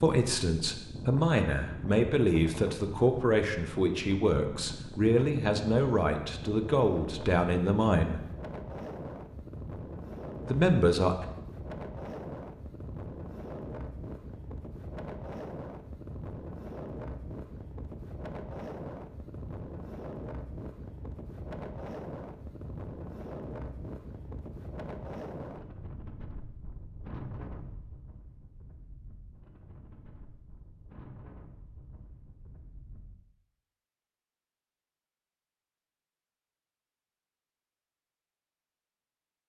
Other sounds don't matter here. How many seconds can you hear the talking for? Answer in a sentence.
The talking can be heard for 9 seconds in total.